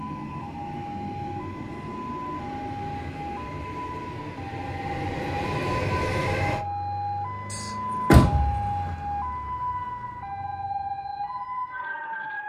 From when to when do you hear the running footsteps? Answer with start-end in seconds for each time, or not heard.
not heard.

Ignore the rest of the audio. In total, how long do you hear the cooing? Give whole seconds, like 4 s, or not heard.
not heard.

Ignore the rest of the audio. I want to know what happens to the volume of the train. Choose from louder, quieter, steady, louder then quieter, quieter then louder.
louder.